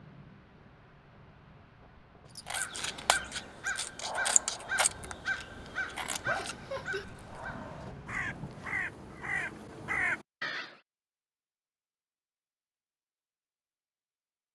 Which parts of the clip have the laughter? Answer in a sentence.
You can hear the laughter from 6.2 to 7.0 s.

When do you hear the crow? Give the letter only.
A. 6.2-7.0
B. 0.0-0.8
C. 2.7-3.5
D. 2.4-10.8
D.